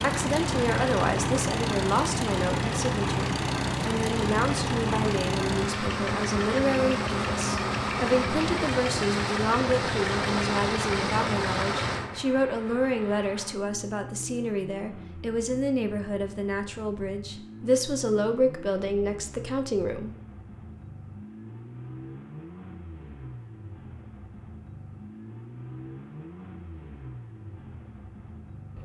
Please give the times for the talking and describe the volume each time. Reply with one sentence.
The talking can be heard from 0.0 to 20.1 s, at a steady volume.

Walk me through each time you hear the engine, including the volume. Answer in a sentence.
You can hear the engine from 0.0 to 28.8 s, getting quieter.